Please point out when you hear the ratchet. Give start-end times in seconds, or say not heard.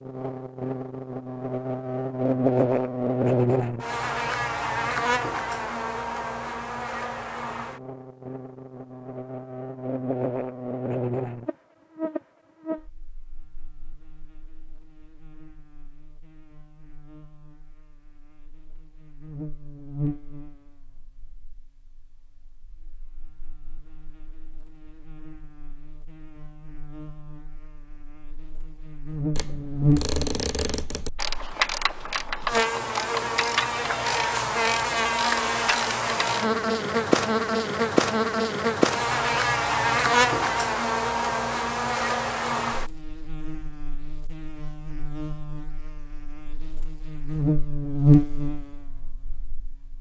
29.4-36.5.